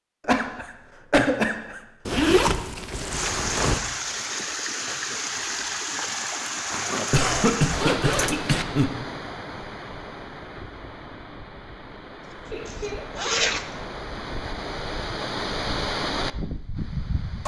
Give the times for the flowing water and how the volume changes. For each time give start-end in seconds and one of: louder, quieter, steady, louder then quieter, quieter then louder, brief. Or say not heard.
3.0-17.4 quieter then louder.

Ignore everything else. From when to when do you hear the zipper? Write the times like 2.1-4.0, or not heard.
2.0-3.8, 6.7-8.7, 12.7-13.7.